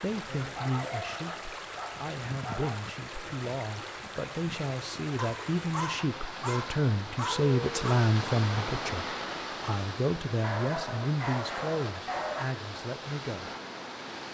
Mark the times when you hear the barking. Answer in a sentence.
The barking can be heard from 0.2 to 2.8 s, from 5.2 to 8.0 s and from 10.4 to 12.4 s.